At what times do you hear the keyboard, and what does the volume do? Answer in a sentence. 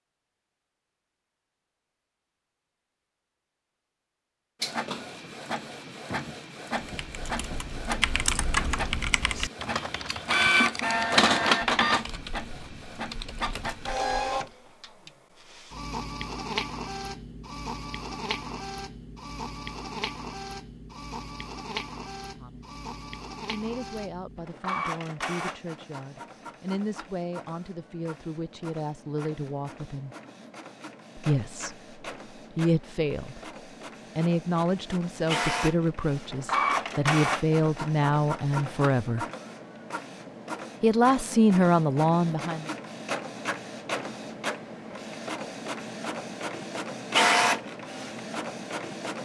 The keyboard can be heard from 7.0 to 14.6 s, getting quieter.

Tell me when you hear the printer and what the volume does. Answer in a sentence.
The printer can be heard from 4.6 to 49.1 s, getting quieter then louder.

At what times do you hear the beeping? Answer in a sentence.
You can't hear the beeping here.